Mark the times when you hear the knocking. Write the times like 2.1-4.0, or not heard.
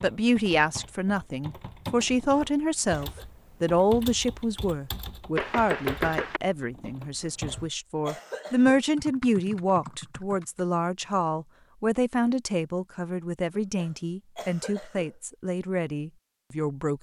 5.3-6.4.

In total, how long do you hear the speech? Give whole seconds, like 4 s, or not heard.
17 s.